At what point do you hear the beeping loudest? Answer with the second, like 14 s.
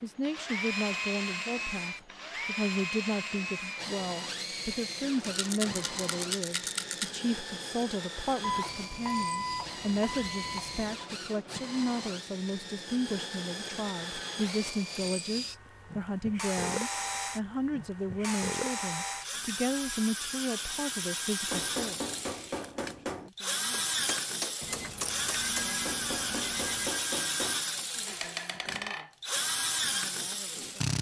9 s.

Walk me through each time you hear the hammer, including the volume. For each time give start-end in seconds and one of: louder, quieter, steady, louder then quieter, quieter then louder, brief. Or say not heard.
21.4-29.1 steady.